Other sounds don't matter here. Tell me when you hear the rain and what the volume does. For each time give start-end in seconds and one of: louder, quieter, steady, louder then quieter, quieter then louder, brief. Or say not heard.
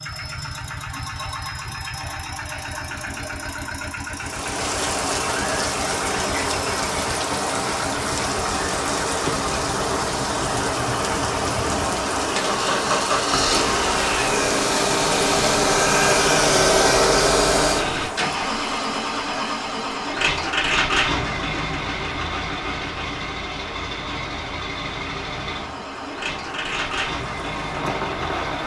4.2-28.6 quieter.